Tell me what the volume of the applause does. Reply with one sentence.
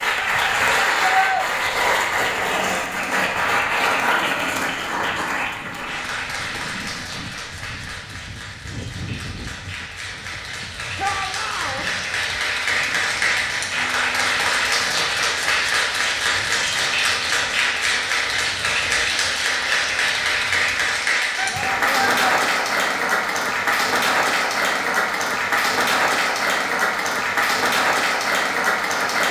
The loudness of the applause goes down, then up.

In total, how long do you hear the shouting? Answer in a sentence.
You can hear the shouting for 3 seconds altogether.